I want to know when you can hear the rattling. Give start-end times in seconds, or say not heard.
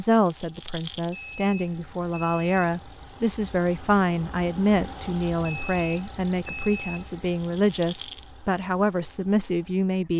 0.2-1.1, 7.3-8.2.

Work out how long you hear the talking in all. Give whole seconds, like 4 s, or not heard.
10 s.